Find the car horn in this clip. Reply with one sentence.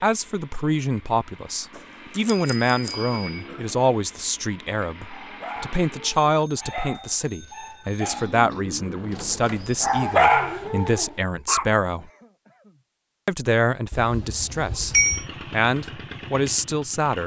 You can't hear the car horn here.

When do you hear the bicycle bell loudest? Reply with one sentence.
The volume of the bicycle bell peaks at 15 seconds.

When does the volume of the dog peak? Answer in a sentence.
The volume of the dog peaks at 10 seconds.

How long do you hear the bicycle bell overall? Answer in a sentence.
The bicycle bell can be heard for 5 seconds in total.